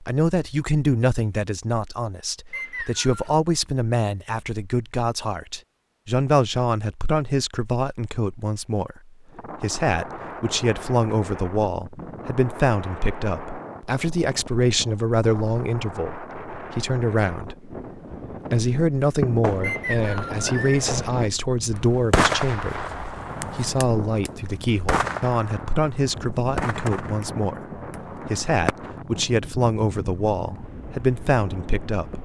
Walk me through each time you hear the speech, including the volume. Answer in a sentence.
You can hear the speech from 0.0 to 32.1 s, at a steady volume.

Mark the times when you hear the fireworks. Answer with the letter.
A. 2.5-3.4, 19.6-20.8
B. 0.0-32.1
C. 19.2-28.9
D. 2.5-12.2
C.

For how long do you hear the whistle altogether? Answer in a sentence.
You can hear the whistle for 2 seconds altogether.